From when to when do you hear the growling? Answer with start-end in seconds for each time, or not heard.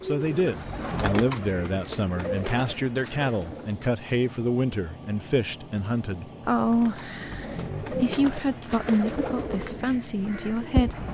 0.6-1.2, 7.2-8.3.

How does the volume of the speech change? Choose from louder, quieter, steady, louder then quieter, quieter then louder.
steady.